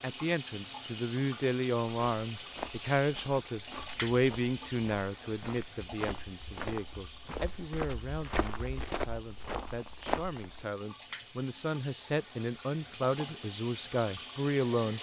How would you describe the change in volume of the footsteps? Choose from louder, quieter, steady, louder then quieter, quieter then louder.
louder.